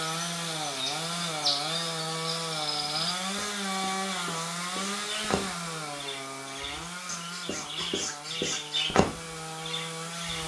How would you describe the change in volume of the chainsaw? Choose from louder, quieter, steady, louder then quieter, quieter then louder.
quieter.